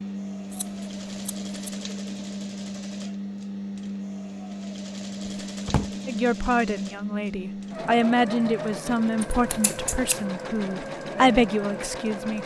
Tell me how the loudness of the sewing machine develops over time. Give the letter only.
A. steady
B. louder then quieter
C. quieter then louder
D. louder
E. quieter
A.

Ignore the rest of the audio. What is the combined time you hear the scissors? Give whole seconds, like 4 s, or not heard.
2 s.